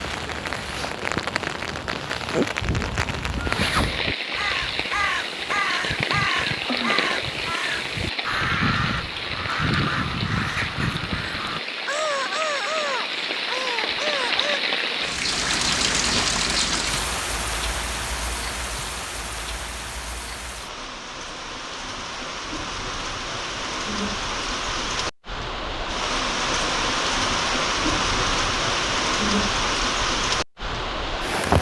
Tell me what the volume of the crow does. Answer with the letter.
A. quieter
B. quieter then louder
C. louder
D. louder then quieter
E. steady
E.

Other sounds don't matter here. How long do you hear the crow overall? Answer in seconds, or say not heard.
12 s.